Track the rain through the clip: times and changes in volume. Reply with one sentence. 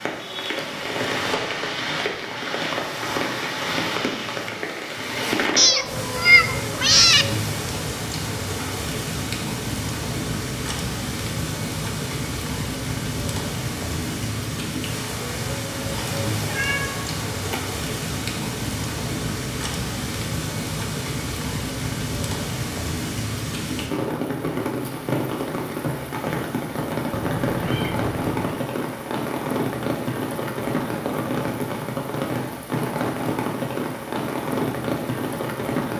The rain can be heard from 0.0 to 35.9 s, at a steady volume.